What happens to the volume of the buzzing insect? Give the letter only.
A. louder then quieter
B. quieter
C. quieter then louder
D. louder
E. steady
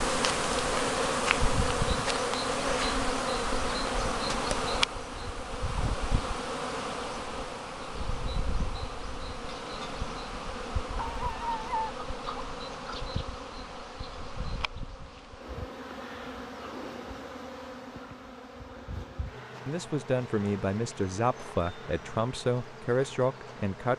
B.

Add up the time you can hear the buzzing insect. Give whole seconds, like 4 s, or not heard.
24 s.